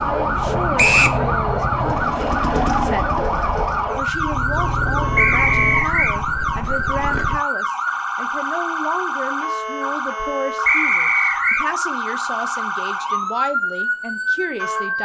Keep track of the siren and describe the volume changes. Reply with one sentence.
The volume of the siren stays about the same.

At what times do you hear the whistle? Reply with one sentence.
You can hear the whistle from 0.8 to 1.2 s, from 5.2 to 6.2 s and from 10.7 to 11.7 s.